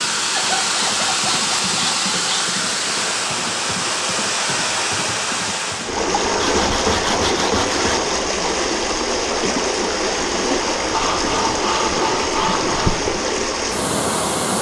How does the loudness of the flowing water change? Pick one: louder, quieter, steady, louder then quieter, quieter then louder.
steady.